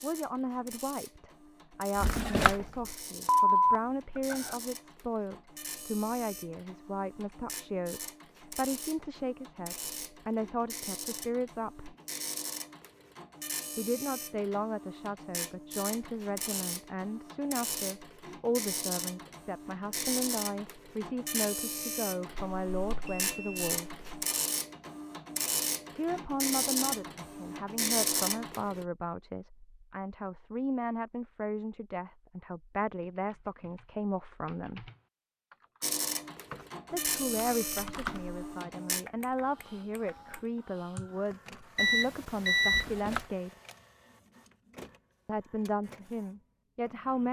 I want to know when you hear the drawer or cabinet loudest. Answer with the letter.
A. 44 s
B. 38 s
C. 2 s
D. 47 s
C.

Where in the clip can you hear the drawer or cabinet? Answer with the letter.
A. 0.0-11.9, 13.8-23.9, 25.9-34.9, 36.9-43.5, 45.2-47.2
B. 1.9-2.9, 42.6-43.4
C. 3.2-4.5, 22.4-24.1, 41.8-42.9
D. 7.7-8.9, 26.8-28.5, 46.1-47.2
B.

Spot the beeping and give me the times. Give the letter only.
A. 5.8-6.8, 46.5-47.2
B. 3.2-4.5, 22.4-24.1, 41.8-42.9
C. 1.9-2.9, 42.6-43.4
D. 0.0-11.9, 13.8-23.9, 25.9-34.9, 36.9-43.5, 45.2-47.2
B.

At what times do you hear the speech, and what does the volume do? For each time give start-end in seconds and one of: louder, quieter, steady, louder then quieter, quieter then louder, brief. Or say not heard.
0.0-11.9 steady
13.8-23.9 steady
25.9-34.9 steady
36.9-43.5 steady
45.2-47.2 brief.